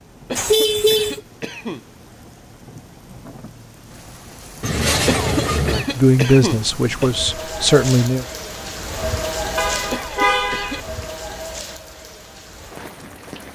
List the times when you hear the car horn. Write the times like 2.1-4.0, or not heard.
0.3-1.2, 4.6-5.8, 9.6-10.8.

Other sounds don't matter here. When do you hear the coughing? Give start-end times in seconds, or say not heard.
0.2-1.9, 5.0-7.1, 9.9-10.8.